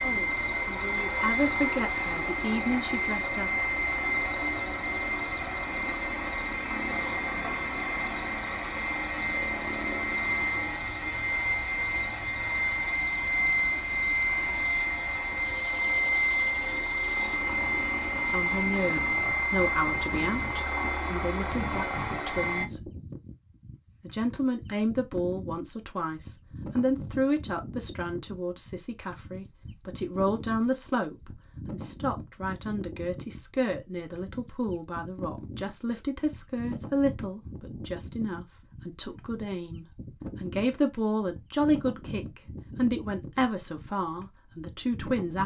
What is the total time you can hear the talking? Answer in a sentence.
The talking can be heard for 30 seconds in total.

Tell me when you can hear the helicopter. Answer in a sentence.
You can hear the helicopter from 0.0 to 22.6 s.